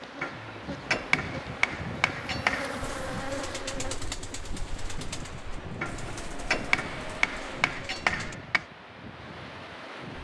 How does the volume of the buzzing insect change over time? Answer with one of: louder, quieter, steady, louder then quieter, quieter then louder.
louder.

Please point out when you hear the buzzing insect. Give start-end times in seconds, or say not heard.
0.0-4.0.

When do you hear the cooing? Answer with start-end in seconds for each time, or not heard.
2.8-8.3.